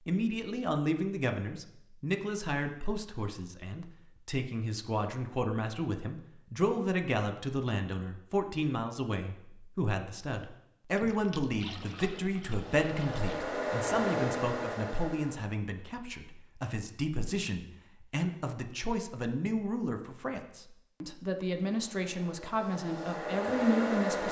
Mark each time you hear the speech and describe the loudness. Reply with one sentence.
The speech can be heard from 0.1 to 24.2 s, at a steady volume.